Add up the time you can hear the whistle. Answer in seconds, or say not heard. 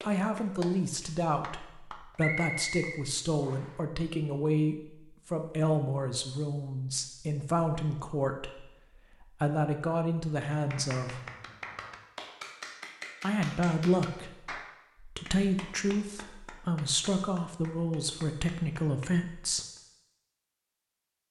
2 s.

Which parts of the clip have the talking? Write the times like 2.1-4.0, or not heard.
0.0-11.2, 13.2-19.6.